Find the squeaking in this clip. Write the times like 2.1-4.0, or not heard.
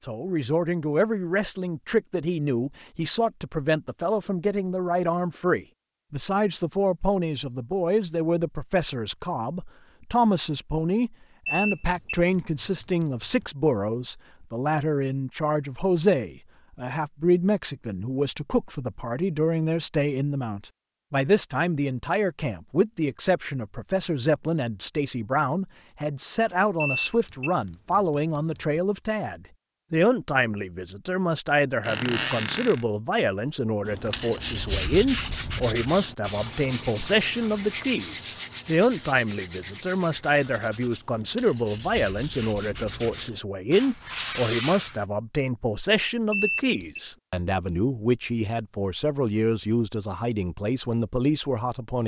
31.8-32.9.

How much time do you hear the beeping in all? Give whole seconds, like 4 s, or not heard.
5 s.